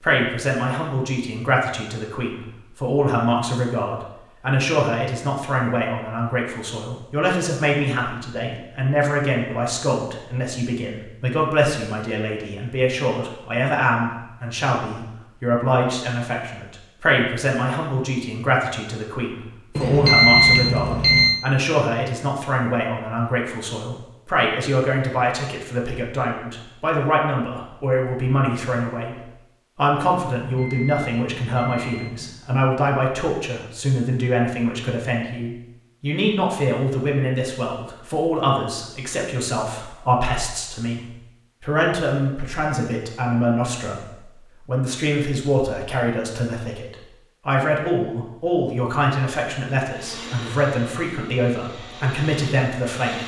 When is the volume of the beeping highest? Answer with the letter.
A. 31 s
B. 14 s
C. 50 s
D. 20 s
D.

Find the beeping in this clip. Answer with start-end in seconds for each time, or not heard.
19.8-21.4, 30.4-32.2.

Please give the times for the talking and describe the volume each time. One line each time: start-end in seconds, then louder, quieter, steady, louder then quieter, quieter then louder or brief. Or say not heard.
0.0-53.2 steady.